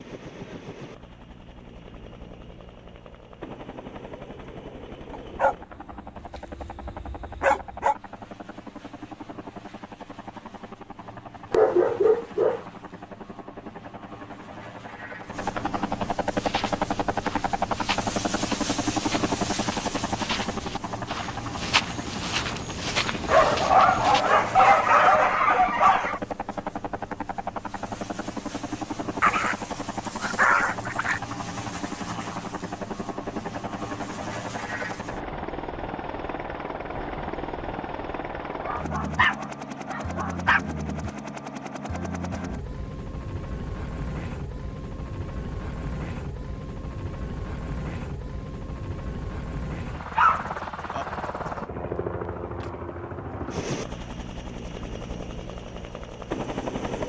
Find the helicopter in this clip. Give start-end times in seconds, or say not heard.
0.0-57.0.